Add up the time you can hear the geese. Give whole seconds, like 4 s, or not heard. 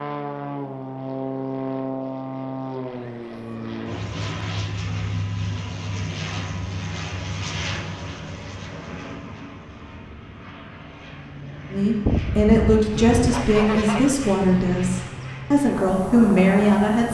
2 s.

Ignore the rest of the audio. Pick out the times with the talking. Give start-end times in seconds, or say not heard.
11.7-17.0.